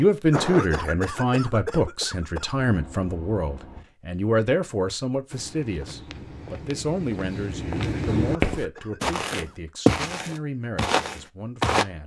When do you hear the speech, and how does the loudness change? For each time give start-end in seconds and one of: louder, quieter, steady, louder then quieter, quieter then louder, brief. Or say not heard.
0.0-12.0 quieter.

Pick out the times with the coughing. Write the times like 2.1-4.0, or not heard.
0.3-2.5, 8.1-9.6.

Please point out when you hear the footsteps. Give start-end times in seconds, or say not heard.
5.3-11.8.